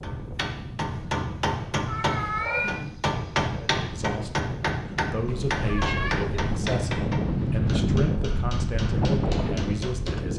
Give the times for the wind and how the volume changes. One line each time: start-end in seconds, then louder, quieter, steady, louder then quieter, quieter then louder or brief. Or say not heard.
0.0-10.3 louder.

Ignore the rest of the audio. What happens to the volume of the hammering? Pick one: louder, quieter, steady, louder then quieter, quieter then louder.
quieter.